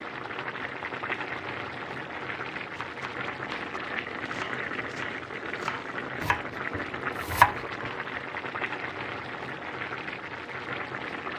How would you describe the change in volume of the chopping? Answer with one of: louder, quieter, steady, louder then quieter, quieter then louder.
louder.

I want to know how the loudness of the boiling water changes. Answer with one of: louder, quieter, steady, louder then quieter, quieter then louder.
steady.